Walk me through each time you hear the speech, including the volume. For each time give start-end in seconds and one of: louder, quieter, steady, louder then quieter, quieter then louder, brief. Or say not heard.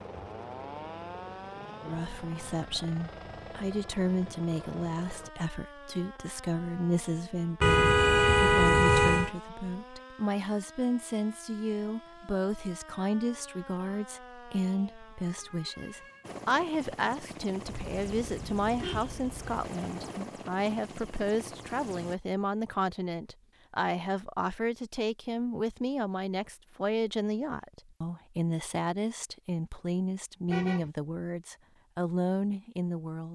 1.8-33.3 steady.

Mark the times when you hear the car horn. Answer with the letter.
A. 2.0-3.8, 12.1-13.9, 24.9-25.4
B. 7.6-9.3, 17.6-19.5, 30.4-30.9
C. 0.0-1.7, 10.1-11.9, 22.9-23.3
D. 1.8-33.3
B.